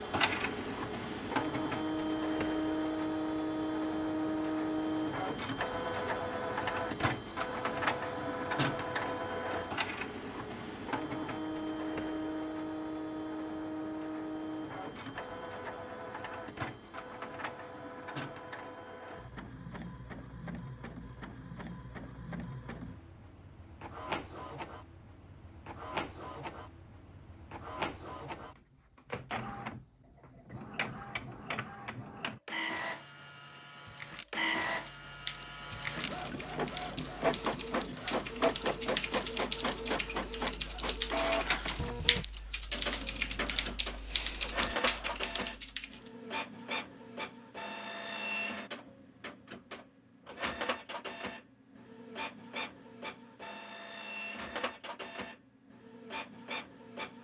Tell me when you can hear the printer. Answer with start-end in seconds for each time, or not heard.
0.0-57.2.